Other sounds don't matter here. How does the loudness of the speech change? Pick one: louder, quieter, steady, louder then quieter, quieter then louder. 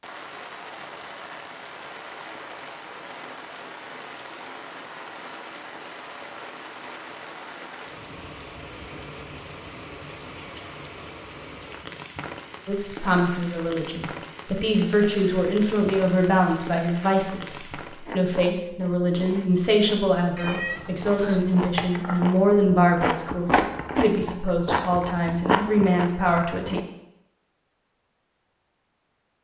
steady.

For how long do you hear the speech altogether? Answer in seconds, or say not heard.
14 s.